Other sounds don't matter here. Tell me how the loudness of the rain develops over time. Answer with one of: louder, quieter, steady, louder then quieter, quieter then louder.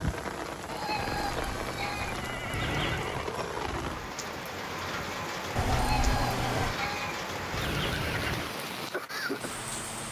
steady.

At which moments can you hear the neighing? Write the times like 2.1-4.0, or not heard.
0.9-3.3, 5.5-6.8.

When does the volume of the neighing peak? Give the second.
6 s.